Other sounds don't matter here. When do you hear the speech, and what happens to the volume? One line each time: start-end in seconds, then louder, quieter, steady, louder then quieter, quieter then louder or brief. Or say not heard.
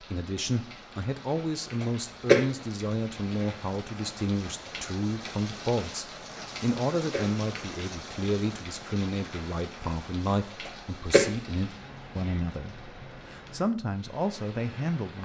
0.0-15.2 steady.